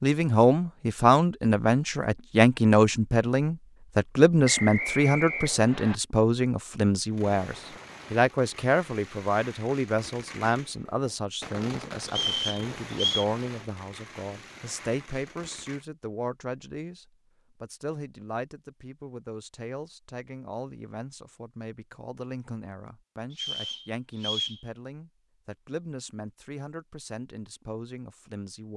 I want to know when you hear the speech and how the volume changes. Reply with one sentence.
You can hear the speech from 0.0 to 28.7 s, getting quieter.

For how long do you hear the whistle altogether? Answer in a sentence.
The whistle can be heard for 4 seconds in total.